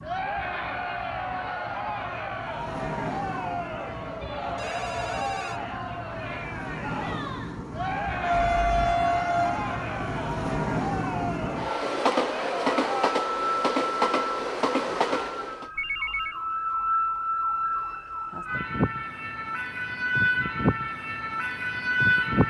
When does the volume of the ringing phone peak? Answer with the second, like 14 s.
16 s.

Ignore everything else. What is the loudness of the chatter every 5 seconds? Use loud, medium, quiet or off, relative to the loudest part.
loud, loud, loud, off, off.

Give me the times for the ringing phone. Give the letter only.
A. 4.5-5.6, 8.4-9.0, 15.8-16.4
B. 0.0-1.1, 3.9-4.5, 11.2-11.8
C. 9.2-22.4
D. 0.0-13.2
A.